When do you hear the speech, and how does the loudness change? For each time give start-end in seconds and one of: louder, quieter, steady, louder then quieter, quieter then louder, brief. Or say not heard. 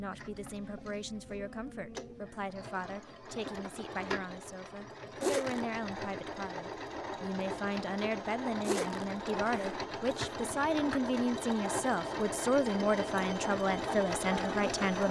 0.0-15.0 louder.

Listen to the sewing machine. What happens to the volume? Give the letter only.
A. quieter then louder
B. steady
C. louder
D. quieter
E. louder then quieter
C.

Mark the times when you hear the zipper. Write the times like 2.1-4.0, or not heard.
5.2-5.7, 8.6-10.3.